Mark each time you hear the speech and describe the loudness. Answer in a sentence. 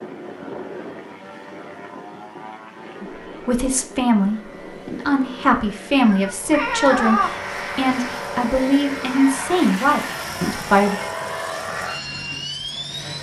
The speech can be heard from 3.0 to 10.9 s, at a steady volume.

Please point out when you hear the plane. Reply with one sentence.
You can hear the plane from 0.0 to 13.1 s.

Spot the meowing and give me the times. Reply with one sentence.
You can hear the meowing from 6.0 to 7.3 s.